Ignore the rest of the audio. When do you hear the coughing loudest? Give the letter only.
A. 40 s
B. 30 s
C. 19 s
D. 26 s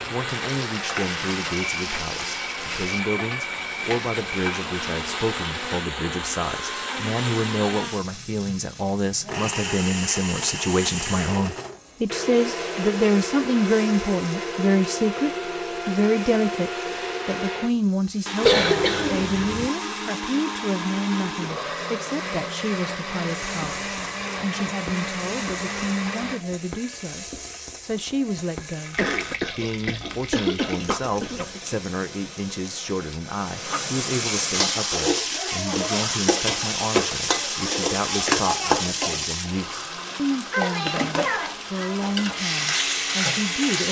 C.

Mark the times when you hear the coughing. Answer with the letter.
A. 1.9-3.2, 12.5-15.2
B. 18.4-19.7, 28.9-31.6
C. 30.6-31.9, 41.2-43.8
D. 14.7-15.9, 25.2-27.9
B.